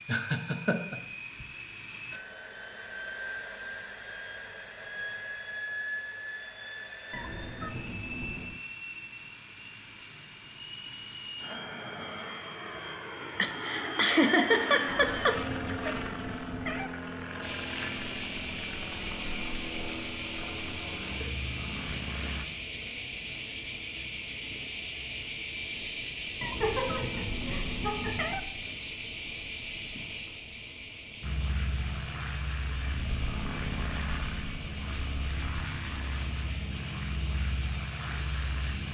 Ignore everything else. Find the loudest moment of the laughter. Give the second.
14 s.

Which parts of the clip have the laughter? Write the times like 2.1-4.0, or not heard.
0.1-1.4, 13.3-15.9, 26.6-28.3.